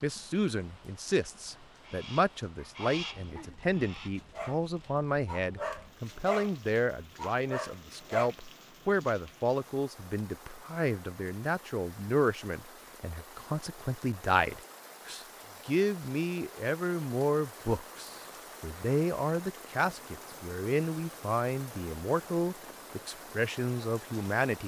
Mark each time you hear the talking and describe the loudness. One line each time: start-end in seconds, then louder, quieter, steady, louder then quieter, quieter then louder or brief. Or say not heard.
0.0-24.6 steady.